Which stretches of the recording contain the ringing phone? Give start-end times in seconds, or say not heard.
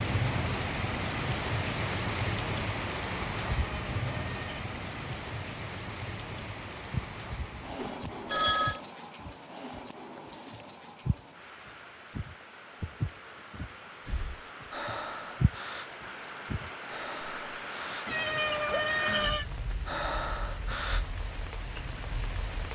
7.8-8.8, 17.5-18.8.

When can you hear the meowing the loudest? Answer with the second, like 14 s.
19 s.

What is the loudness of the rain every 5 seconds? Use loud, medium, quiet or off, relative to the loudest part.
loud, medium, quiet, medium, medium.